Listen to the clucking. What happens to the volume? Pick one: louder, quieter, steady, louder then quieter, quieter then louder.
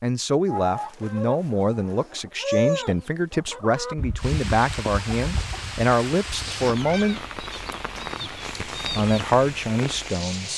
louder then quieter.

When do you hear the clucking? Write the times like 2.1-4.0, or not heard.
0.5-9.2.